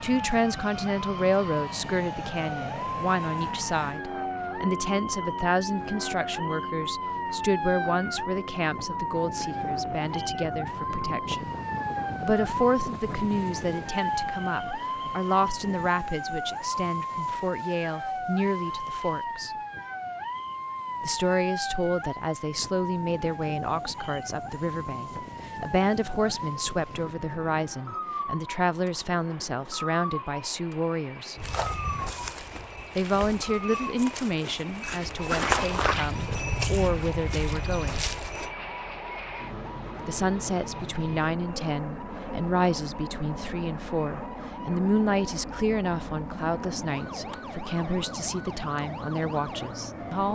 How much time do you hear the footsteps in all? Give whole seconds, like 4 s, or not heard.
7 s.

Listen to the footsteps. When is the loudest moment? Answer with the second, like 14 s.
35 s.